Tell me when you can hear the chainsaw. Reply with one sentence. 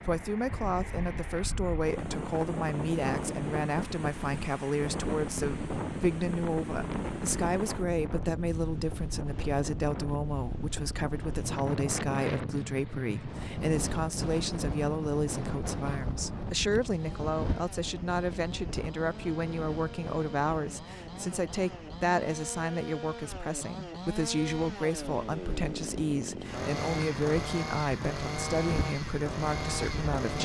The chainsaw can be heard from 16.9 to 30.4 s.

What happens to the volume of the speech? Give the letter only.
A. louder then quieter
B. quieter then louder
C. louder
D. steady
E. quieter
D.